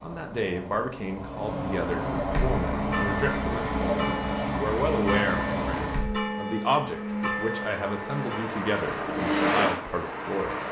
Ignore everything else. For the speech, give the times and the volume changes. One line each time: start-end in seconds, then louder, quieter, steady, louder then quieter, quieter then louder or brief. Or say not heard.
0.0-10.6 steady.